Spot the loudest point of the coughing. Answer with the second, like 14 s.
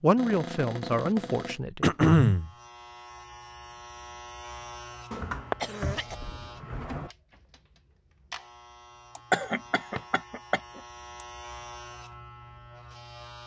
2 s.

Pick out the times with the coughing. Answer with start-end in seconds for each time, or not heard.
1.8-2.5, 5.5-6.2, 9.2-11.2.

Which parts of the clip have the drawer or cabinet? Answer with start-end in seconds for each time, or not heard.
0.1-1.6, 5.1-7.1, 9.5-10.1.